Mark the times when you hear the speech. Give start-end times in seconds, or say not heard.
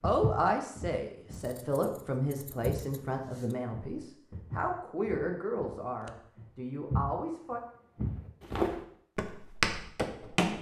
0.0-7.6.